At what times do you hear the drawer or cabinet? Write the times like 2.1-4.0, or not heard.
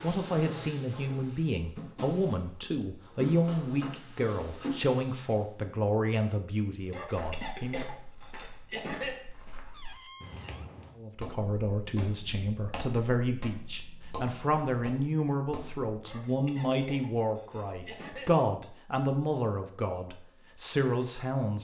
9.7-10.6.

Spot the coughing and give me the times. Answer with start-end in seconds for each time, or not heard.
6.9-9.2, 16.1-18.4.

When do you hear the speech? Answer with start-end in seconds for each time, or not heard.
0.0-7.8, 10.9-21.5.